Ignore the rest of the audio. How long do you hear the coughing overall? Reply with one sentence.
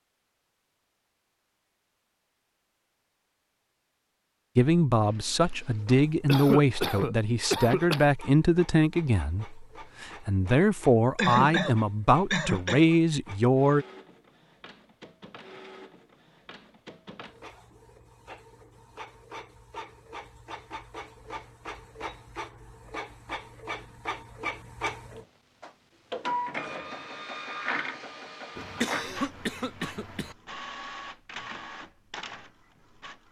The coughing can be heard for 5 seconds in total.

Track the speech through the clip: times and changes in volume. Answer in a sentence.
You can hear the speech from 4.5 to 13.8 s, at a steady volume.